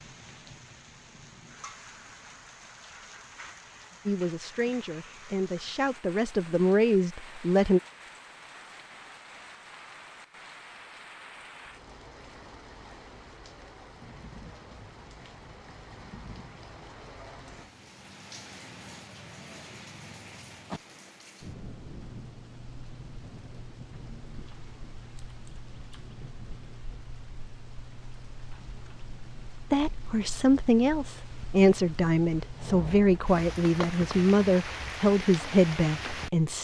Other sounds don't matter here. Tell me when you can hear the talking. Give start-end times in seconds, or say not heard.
4.0-7.8, 29.7-36.5.